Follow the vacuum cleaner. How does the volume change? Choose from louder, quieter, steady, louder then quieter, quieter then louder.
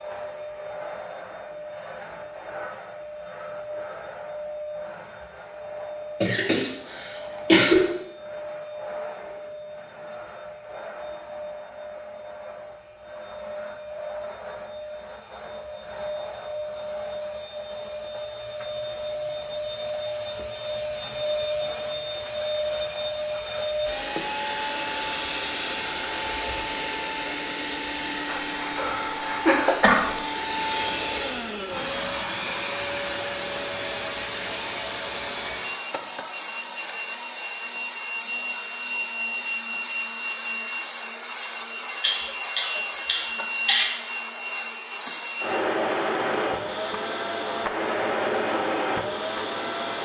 louder.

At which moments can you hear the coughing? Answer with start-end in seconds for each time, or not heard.
6.2-7.8, 28.2-30.1, 42.0-43.9.